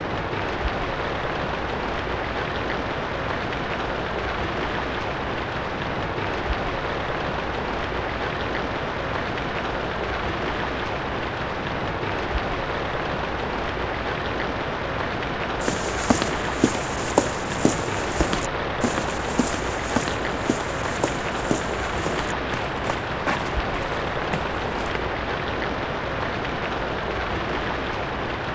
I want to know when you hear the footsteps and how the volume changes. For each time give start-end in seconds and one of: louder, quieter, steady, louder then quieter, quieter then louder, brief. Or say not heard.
15.6-25.1 quieter.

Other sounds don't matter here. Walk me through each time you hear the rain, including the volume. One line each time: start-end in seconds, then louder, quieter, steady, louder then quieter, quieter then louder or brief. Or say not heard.
0.0-28.5 steady.